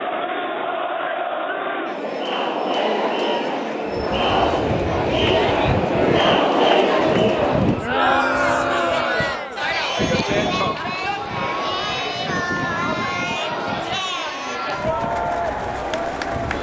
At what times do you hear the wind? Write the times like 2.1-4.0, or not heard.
3.9-16.5.